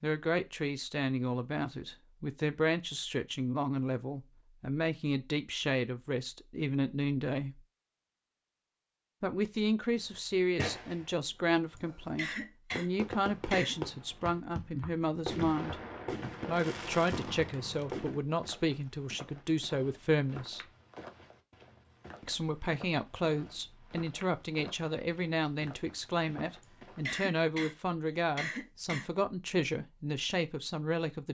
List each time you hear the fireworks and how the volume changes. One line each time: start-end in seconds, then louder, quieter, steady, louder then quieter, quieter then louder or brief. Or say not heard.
9.9-18.2 steady.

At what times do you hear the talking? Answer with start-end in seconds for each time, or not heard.
0.0-7.6, 9.2-15.8, 16.4-20.6, 22.2-31.2.